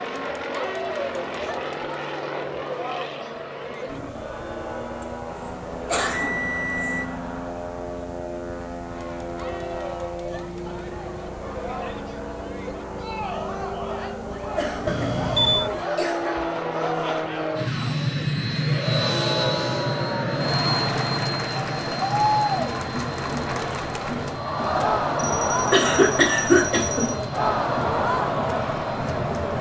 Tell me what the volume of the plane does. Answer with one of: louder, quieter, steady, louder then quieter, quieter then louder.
louder then quieter.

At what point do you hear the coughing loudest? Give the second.
26 s.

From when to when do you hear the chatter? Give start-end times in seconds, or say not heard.
0.0-29.5.